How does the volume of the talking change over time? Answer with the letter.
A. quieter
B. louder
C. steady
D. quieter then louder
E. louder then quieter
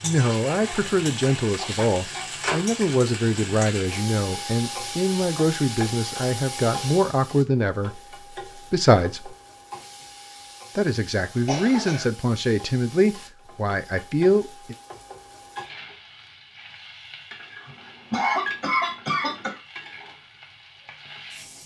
C.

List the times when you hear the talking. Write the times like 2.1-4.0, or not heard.
0.0-9.3, 10.8-14.8.